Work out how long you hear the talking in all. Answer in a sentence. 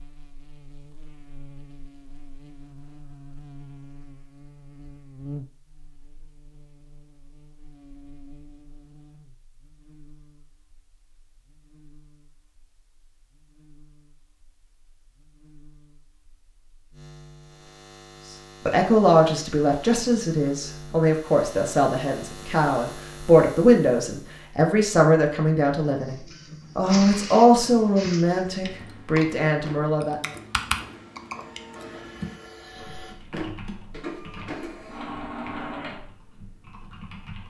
The talking can be heard for 12 seconds in total.